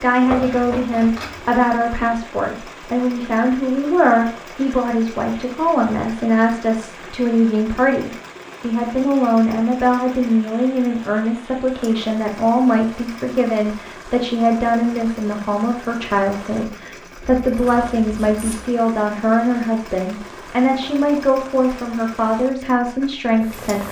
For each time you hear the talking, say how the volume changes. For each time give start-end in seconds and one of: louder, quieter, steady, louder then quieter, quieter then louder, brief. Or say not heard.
0.0-23.8 steady.